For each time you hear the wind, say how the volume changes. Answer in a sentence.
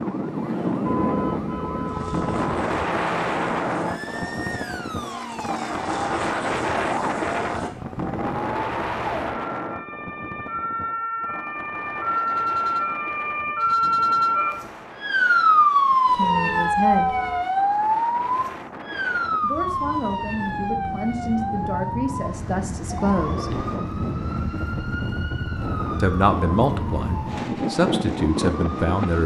The wind can be heard from 0.0 to 29.2 s, getting quieter then louder.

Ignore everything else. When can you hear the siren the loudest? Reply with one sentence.
The loudest moment of the siren is at 16 seconds.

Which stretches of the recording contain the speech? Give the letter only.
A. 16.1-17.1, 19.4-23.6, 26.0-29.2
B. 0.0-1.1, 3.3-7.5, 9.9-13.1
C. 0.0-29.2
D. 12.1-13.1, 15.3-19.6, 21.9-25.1
A.